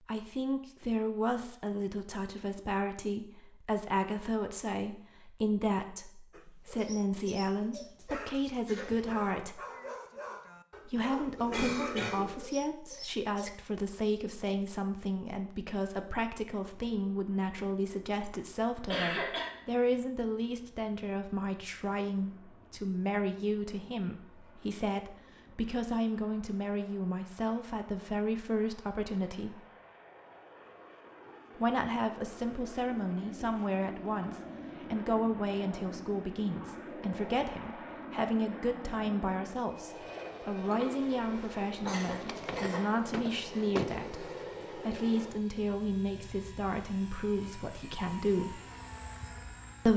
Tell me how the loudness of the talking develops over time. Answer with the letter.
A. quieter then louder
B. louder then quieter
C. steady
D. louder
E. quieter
C.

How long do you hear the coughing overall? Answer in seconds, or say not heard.
4 s.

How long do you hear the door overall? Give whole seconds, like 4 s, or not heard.
3 s.